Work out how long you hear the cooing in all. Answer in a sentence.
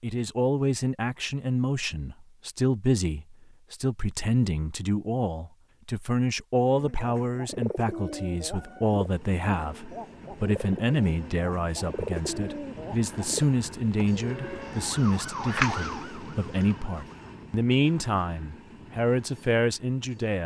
You can hear the cooing for 8 seconds altogether.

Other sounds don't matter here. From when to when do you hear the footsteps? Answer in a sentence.
You can't hear the footsteps here.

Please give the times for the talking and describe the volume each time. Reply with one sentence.
You can hear the talking from 0.0 to 20.4 s, at a steady volume.